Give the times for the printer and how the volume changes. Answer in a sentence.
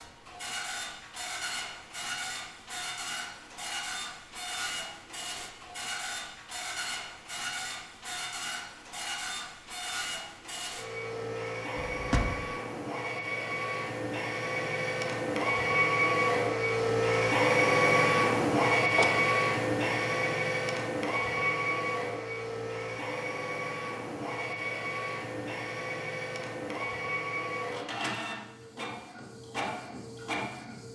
The printer can be heard from 0.0 to 30.9 s, getting louder then quieter.